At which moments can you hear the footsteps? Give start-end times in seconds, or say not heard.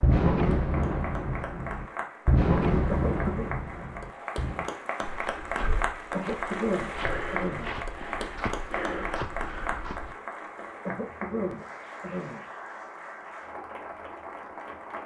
5.0-10.2.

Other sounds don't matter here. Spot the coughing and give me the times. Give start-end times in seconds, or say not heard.
2.9-3.5, 6.1-7.7, 10.8-12.4.